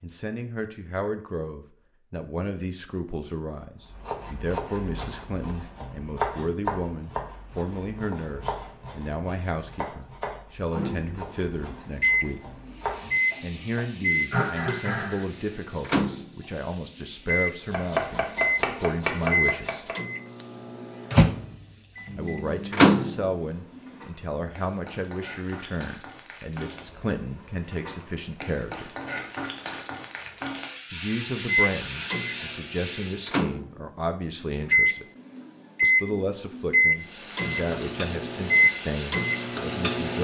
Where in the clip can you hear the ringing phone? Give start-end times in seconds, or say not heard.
not heard.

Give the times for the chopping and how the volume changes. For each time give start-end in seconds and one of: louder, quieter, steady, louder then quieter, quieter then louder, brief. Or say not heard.
3.9-13.8 louder then quieter
17.7-19.9 brief.